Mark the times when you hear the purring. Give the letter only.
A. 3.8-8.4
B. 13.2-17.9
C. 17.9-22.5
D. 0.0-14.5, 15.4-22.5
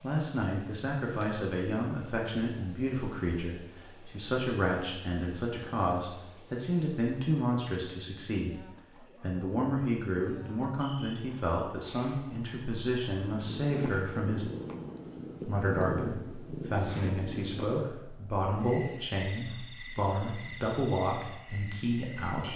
B.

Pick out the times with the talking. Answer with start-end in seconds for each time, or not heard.
0.0-14.5, 15.4-22.5.